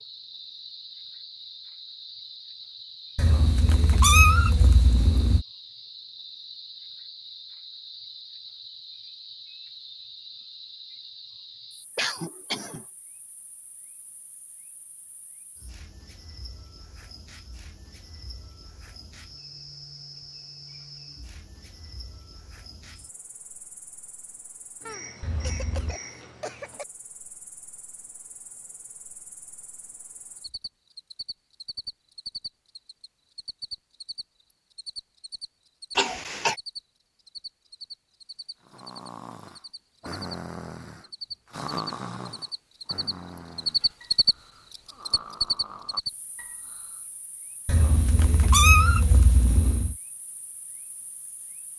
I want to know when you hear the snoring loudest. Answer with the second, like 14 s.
42 s.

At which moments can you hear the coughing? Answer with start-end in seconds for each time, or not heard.
11.9-12.8, 24.9-26.9, 36.0-36.5.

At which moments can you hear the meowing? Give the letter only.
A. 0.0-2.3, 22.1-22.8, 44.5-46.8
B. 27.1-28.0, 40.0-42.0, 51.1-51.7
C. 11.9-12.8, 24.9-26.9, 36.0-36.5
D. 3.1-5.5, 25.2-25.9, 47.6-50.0
D.